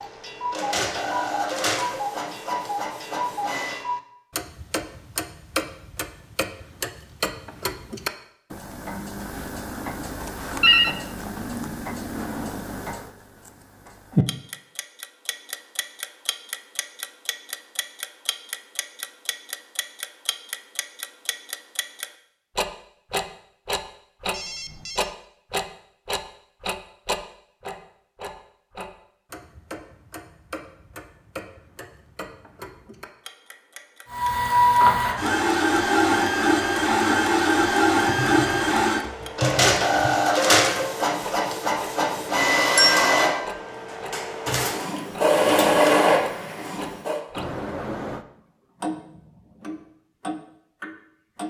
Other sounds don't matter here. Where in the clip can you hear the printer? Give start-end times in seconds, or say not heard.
0.0-3.9, 34.1-47.2.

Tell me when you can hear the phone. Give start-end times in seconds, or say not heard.
10.2-10.9, 24.3-25.1, 47.4-48.2.